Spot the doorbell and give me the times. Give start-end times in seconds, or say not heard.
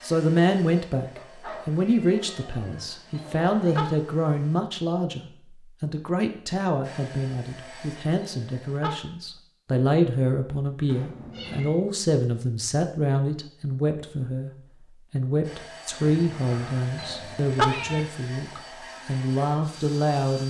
3.1-3.9, 8.2-8.9, 16.9-17.6.